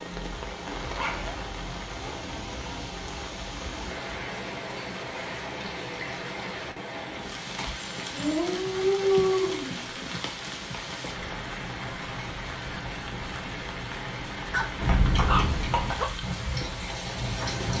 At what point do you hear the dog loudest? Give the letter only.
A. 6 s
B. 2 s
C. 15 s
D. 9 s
D.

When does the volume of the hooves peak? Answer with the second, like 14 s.
15 s.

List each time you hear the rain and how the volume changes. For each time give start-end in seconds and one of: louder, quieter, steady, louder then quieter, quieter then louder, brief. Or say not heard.
0.0-17.7 steady.